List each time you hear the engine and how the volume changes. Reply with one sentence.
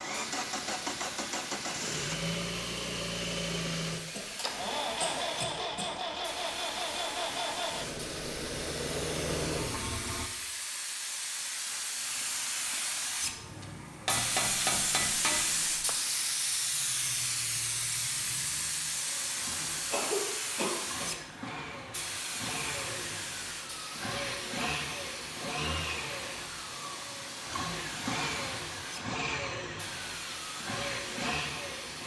You can hear the engine from 0.0 to 10.3 s, at a steady volume; and from 13.2 to 32.0 s, getting louder.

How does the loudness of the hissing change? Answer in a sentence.
The loudness of the hissing goes up, then down.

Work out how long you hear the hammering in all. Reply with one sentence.
You can hear the hammering for 2 seconds altogether.